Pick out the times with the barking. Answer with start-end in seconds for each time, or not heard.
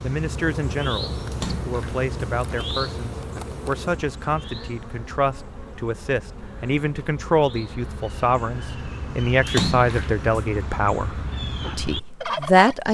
not heard.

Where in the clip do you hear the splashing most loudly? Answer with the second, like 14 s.
10 s.